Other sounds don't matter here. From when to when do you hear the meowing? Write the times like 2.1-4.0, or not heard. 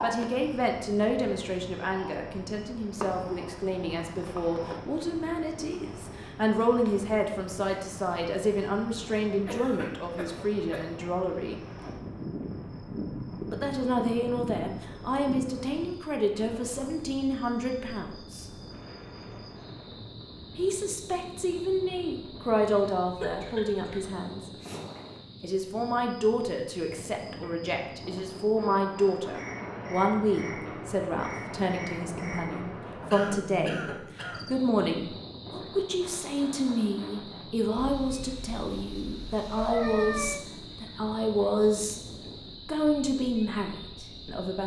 37.8-40.5.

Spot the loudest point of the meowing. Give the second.
40 s.